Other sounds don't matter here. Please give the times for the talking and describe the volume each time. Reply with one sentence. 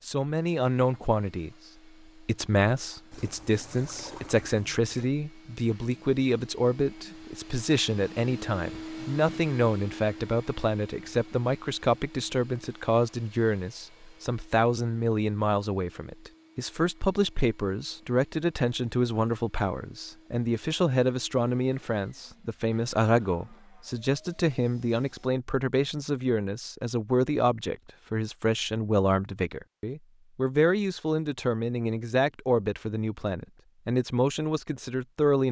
You can hear the talking briefly from 0.0 to 1.5 s; and from 2.2 to 35.4 s, at a steady volume.